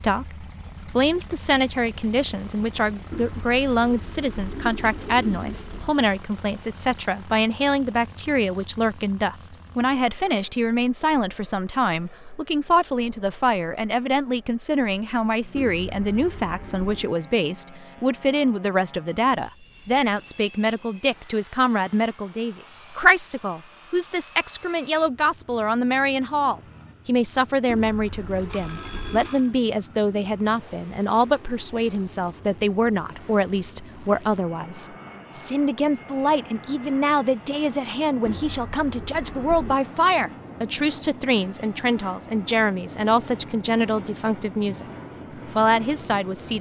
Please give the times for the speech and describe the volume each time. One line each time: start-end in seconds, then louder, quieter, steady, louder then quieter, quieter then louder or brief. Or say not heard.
0.0-44.9 steady
45.5-46.5 brief.